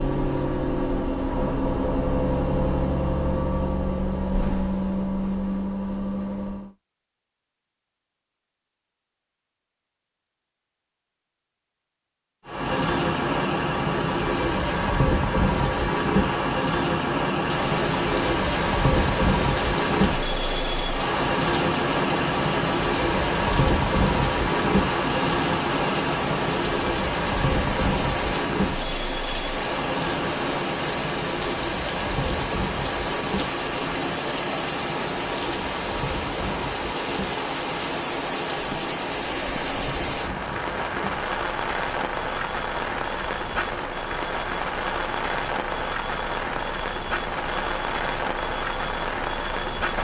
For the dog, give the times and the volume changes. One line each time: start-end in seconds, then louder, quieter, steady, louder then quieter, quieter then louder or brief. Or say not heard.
not heard.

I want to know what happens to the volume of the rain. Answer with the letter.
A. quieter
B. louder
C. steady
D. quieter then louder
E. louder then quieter
C.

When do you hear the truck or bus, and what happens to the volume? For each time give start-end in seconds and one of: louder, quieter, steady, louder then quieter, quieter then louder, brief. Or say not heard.
0.0-6.7 steady
12.4-49.9 quieter.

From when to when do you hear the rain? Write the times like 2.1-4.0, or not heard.
17.4-49.9.